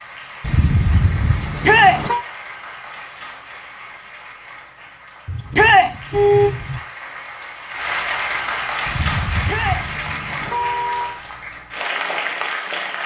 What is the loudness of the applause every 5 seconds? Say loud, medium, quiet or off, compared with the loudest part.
medium, loud, loud.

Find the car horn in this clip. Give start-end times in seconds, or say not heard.
0.4-2.2, 5.2-6.8, 8.8-11.2.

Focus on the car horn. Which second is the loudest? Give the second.
6 s.